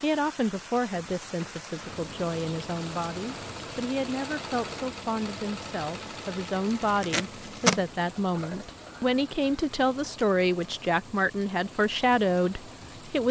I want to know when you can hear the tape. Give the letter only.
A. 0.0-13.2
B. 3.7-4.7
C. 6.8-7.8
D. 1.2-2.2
C.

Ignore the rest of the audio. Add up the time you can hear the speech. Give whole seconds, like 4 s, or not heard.
13 s.